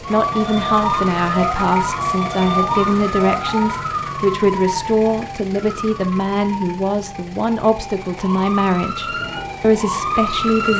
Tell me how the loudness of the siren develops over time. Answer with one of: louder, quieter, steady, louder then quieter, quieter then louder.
quieter then louder.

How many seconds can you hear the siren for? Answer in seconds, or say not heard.
11 s.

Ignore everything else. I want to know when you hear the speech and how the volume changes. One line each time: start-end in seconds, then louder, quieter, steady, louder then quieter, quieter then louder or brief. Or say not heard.
0.0-10.7 steady.